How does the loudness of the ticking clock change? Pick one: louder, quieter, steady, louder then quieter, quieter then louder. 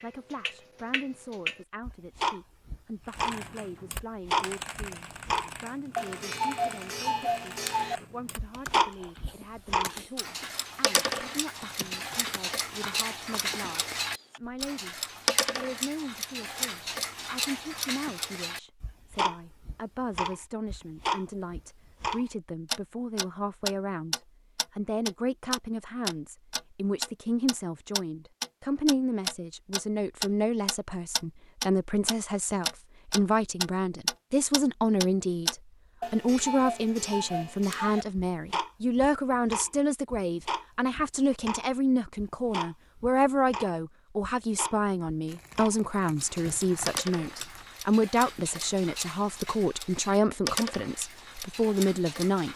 quieter.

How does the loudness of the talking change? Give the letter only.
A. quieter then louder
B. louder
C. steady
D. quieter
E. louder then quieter
B.